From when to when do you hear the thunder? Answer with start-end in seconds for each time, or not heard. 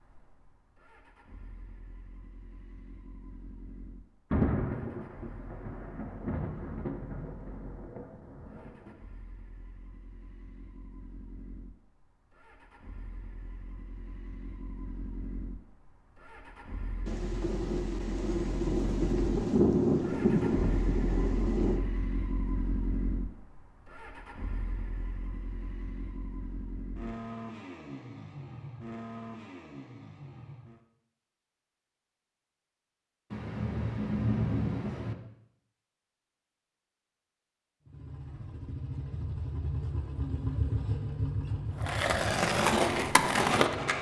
4.3-8.9, 17.1-21.8, 33.3-35.1.